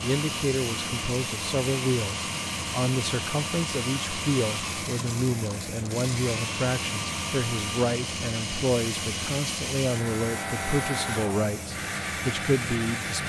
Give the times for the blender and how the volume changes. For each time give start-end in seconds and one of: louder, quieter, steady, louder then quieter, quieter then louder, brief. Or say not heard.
0.0-13.2 steady.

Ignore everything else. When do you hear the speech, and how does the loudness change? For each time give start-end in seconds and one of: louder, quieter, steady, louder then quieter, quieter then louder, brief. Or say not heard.
0.0-13.2 steady.